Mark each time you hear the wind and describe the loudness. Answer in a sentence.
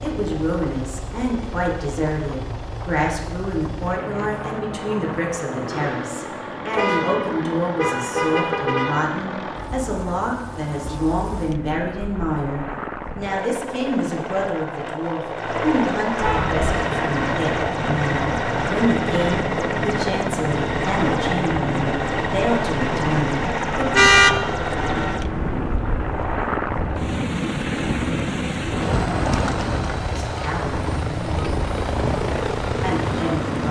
You can hear the wind from 16.4 to 33.6 s, at a steady volume.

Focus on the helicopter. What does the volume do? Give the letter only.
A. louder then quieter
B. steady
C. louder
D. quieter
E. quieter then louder
C.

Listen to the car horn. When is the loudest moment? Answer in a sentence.
The volume of the car horn peaks at 24 seconds.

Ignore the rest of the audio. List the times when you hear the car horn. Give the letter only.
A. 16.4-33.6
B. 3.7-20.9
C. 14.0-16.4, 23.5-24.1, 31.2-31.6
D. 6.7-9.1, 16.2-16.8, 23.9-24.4
D.